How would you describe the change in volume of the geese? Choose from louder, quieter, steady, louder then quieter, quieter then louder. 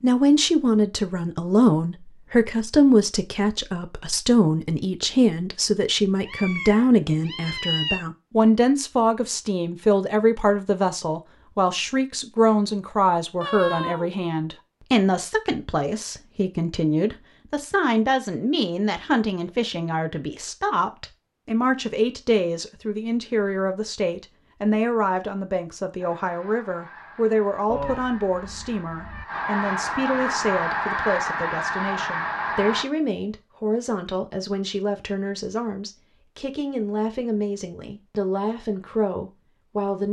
louder.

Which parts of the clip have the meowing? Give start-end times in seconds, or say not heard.
6.2-8.1, 13.4-14.2, 27.6-29.2.